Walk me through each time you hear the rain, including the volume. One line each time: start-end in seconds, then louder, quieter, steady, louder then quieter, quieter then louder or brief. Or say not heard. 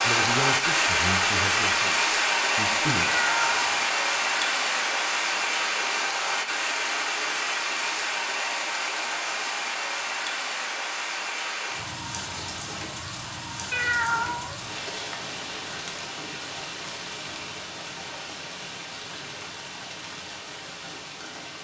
0.0-21.5 quieter.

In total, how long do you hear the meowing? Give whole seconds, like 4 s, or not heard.
2 s.